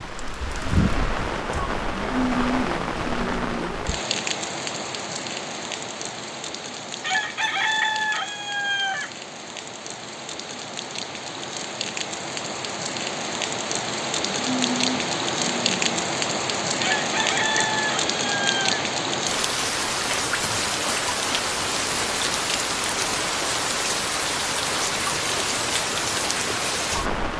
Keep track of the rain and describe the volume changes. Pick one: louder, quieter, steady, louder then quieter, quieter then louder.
quieter then louder.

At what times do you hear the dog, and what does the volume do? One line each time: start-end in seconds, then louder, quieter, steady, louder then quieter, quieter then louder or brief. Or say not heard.
not heard.